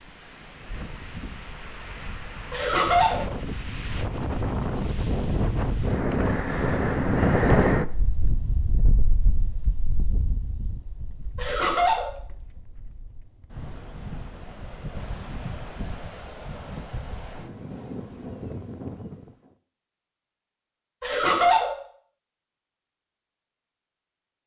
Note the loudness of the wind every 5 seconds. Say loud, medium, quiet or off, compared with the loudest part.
medium, loud, quiet, quiet, off.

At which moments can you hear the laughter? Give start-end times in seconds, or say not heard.
2.5-3.2, 11.3-12.1, 21.0-21.7.